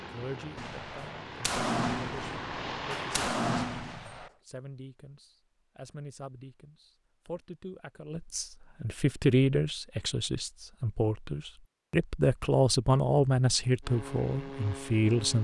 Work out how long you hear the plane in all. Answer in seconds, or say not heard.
5 s.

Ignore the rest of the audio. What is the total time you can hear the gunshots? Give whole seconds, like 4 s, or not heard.
4 s.